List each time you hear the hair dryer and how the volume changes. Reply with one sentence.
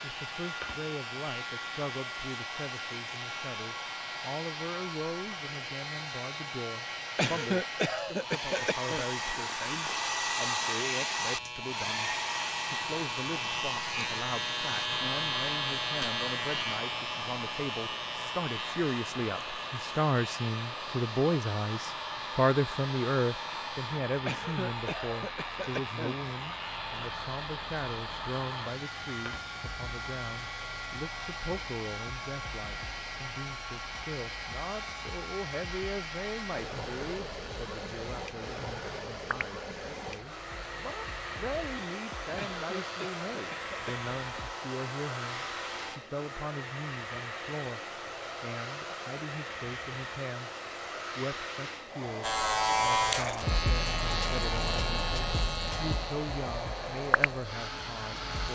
The hair dryer can be heard from 0.0 to 58.4 s, at a steady volume.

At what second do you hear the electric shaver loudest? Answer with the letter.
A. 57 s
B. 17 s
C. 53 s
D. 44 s
C.